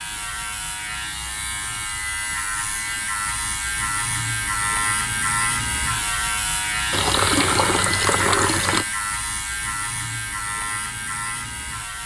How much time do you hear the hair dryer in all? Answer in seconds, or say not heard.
not heard.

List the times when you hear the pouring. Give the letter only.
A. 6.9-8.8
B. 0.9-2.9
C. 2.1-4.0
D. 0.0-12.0
A.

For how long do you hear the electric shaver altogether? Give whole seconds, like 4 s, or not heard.
12 s.